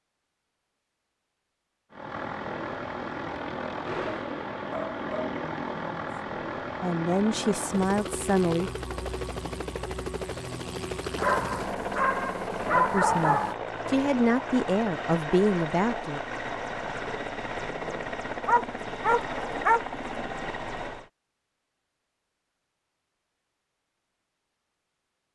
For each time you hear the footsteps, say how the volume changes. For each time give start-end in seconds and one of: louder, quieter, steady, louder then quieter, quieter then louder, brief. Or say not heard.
not heard.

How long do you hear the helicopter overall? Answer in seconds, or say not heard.
19 s.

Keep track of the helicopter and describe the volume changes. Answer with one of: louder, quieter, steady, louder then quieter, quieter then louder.
steady.